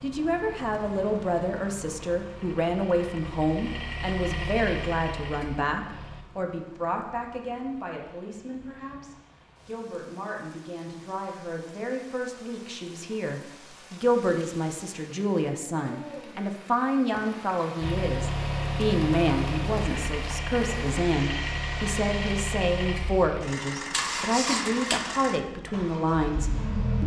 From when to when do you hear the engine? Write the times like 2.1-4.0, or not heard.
0.0-6.2, 17.8-27.0.